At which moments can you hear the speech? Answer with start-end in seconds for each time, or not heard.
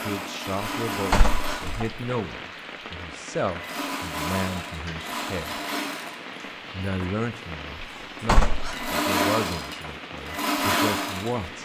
0.0-5.6, 6.7-11.6.